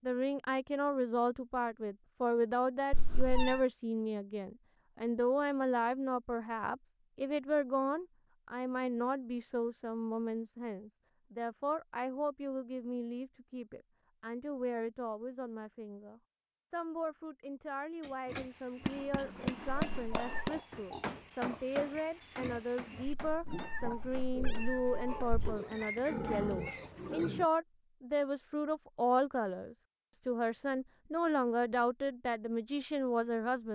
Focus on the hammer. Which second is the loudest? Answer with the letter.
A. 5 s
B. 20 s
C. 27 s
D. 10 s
B.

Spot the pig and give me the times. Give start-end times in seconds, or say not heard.
18.2-27.4.